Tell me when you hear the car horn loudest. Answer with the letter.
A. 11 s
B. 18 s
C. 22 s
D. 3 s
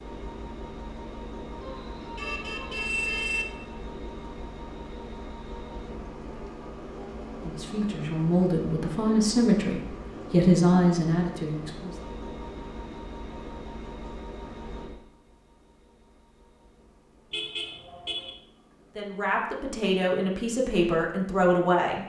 D.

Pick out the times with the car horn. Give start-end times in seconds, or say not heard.
1.6-3.5, 17.3-18.3.